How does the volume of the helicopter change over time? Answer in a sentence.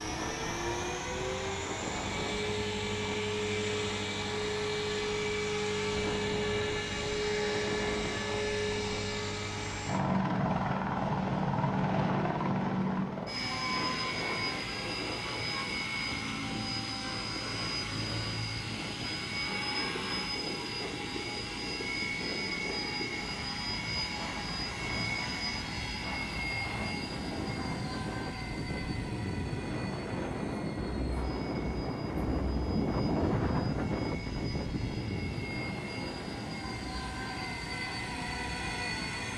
The volume of the helicopter goes down.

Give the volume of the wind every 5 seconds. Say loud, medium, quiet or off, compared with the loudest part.
medium, medium, medium, medium, medium, medium, loud, medium.